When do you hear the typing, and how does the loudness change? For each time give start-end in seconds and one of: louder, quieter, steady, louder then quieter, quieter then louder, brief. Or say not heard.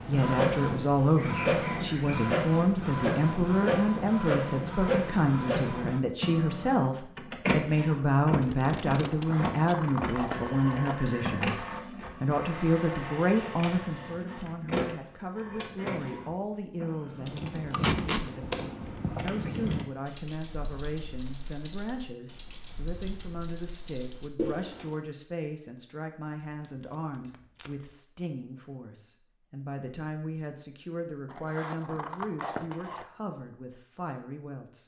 17.1-25.0 quieter then louder.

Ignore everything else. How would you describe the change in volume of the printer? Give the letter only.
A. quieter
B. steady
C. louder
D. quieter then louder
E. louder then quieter
A.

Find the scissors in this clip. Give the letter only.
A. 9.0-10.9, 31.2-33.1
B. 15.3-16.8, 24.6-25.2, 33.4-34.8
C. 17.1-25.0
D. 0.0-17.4
A.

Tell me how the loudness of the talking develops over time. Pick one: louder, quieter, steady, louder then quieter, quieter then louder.
quieter.